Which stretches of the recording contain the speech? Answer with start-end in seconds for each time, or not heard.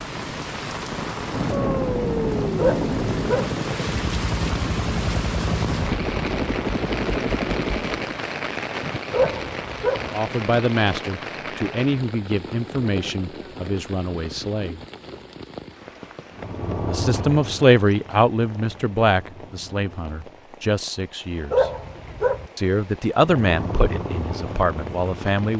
9.9-14.8, 16.9-21.6, 22.6-25.5.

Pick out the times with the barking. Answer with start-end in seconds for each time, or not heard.
2.5-3.5, 9.1-10.1, 21.5-22.4.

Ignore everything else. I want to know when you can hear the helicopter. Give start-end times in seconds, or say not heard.
0.0-8.2, 16.3-20.5, 23.2-25.4.